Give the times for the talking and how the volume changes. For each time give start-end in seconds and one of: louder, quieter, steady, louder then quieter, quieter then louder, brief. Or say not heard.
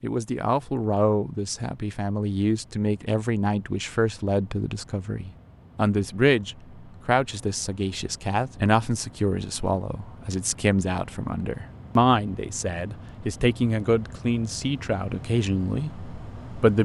0.0-16.7 steady.